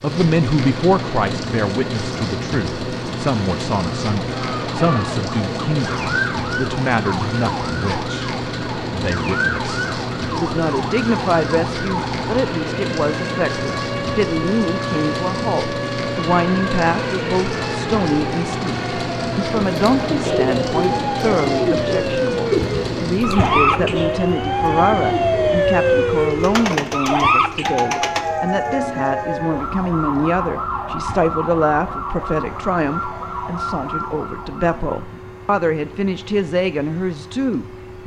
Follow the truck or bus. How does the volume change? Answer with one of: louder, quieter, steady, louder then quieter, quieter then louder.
quieter.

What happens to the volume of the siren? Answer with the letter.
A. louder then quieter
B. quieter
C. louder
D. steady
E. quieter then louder
A.